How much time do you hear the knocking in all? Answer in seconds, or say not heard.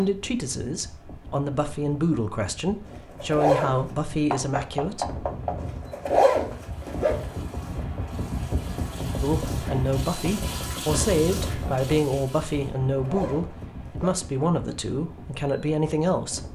2 s.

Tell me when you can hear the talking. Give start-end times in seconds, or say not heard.
0.0-5.2, 9.2-16.4.